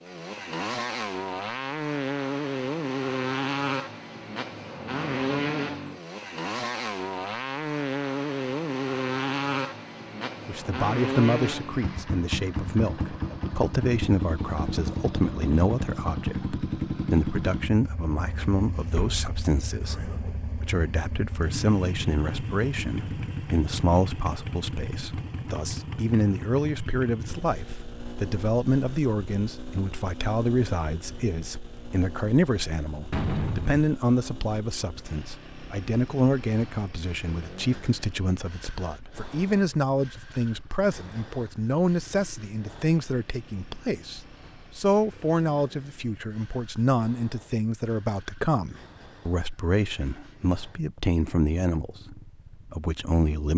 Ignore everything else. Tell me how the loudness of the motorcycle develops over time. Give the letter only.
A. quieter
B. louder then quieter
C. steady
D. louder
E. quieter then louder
A.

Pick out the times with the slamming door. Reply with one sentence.
The slamming door can be heard from 18.9 to 19.4 s and from 33.1 to 33.9 s.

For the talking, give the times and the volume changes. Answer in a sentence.
The talking can be heard from 10.4 to 53.5 s, at a steady volume.